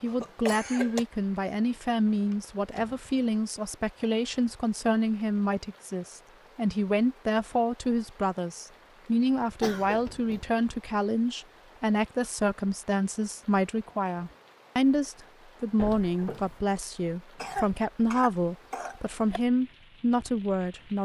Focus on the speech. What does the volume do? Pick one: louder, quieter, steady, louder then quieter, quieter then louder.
steady.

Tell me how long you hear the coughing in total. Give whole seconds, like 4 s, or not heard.
4 s.